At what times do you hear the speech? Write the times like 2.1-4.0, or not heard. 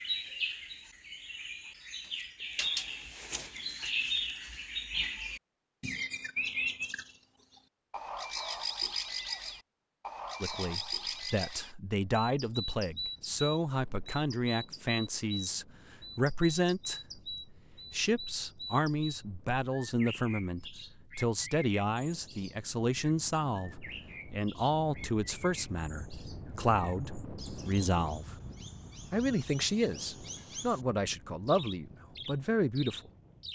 10.4-28.4, 29.1-33.1.